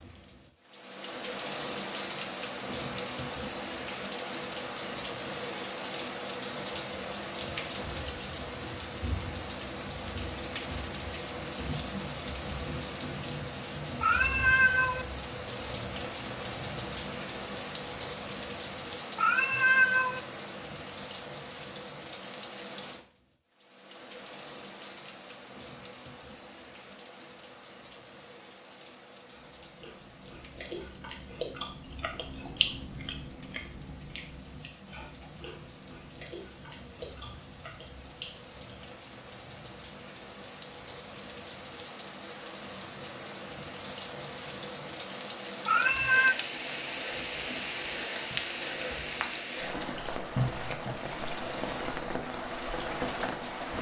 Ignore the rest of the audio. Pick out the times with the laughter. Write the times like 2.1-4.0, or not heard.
not heard.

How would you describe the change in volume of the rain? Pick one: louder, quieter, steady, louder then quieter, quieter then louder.
quieter then louder.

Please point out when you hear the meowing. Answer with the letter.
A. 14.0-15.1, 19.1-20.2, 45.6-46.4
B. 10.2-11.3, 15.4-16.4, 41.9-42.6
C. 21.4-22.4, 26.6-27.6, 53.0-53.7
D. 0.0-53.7
A.